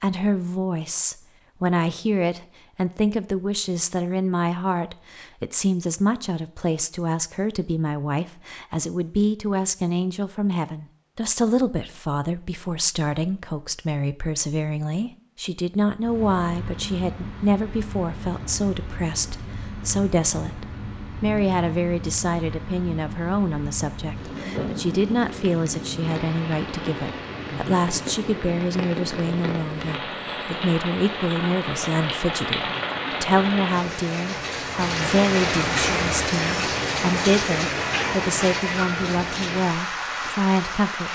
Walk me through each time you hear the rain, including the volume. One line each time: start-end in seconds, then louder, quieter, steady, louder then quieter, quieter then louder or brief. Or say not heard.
15.9-41.1 louder.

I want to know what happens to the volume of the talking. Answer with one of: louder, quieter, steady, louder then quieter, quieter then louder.
steady.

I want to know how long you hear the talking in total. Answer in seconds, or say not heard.
41 s.